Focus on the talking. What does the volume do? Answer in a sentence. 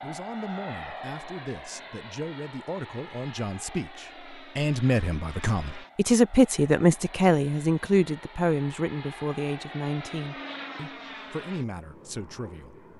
The volume of the talking goes up, then down.